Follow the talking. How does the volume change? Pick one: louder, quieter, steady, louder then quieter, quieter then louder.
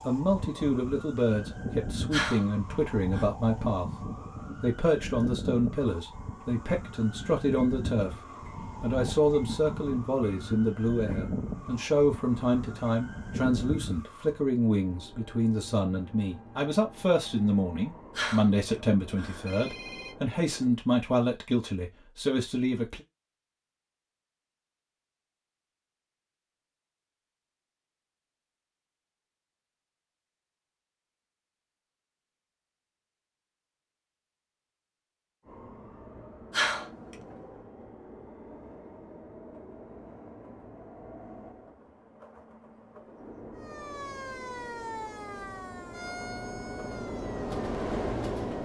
steady.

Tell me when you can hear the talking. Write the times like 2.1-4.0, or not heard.
0.1-8.2, 8.8-23.0.